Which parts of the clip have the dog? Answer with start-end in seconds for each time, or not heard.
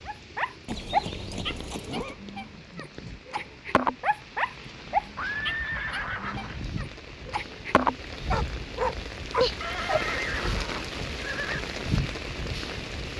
0.1-10.0.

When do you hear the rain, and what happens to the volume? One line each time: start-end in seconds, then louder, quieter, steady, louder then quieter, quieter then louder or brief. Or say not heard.
0.0-13.1 louder.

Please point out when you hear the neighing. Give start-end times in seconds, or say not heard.
0.7-2.1, 5.2-6.6, 9.6-11.6.